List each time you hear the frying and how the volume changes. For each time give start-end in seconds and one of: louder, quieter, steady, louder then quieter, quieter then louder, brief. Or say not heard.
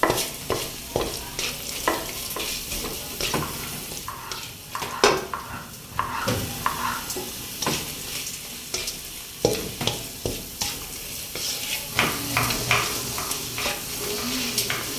0.0-14.9 steady.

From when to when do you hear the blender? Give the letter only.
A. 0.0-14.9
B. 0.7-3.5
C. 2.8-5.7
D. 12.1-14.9
D.